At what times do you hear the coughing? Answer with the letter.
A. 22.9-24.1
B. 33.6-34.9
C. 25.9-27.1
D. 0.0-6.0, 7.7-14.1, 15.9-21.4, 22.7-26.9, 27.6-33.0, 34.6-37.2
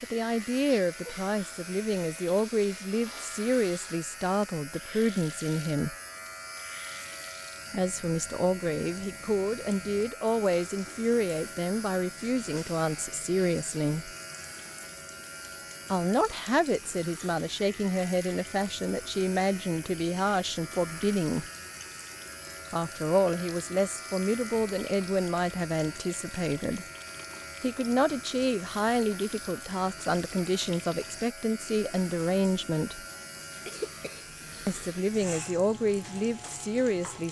B.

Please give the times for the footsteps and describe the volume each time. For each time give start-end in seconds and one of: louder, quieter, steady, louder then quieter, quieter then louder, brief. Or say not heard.
not heard.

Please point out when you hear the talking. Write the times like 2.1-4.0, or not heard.
0.0-6.0, 7.7-14.1, 15.9-21.4, 22.7-26.9, 27.6-33.0, 34.6-37.2.